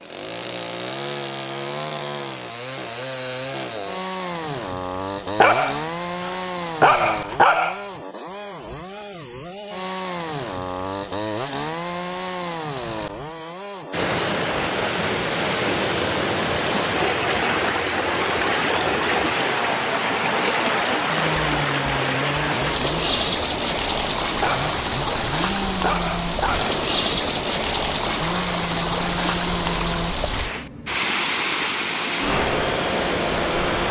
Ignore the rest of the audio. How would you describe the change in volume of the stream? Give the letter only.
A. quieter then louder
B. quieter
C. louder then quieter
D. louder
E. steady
E.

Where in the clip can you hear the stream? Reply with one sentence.
You can hear the stream from 13.9 to 33.8 s.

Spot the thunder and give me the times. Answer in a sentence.
The thunder can't be heard in this clip.